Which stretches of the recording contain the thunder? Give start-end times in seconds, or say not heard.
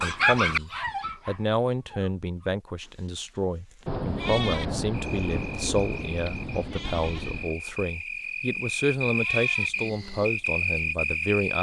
3.9-7.5.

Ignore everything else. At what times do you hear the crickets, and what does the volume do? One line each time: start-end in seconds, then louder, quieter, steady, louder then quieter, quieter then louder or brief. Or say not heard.
4.9-11.5 louder.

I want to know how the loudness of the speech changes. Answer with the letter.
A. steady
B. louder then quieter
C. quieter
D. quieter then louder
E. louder
A.